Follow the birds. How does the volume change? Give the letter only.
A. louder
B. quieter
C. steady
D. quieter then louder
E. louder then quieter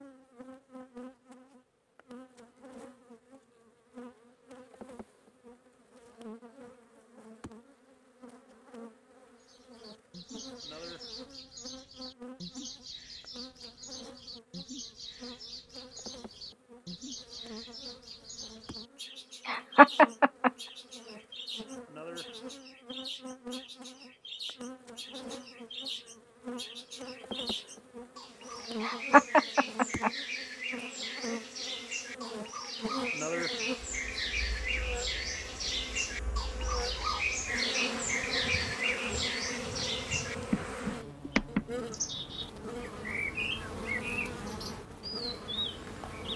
A.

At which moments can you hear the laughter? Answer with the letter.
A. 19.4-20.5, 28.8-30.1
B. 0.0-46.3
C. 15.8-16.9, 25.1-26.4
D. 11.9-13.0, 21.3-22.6
A.